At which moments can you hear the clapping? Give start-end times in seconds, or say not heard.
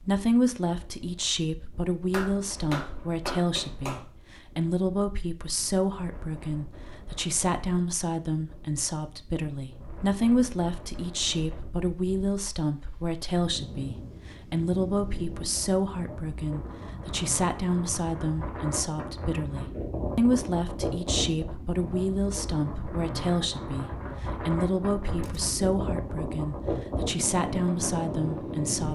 2.1-4.0.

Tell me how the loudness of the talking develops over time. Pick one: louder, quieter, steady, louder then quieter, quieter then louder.
steady.